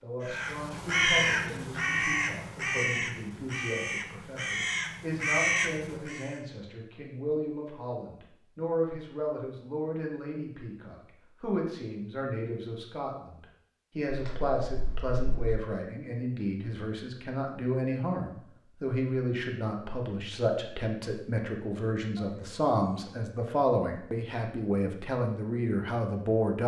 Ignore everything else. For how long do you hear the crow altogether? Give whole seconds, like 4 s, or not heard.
6 s.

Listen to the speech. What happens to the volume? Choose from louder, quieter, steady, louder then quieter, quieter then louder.
louder.